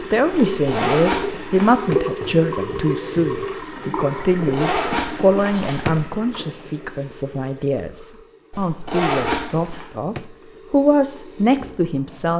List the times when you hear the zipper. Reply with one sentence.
The zipper can be heard from 0.5 to 1.8 s, from 4.3 to 6.1 s and from 8.5 to 9.8 s.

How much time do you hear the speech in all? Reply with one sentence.
The speech can be heard for 12 seconds in total.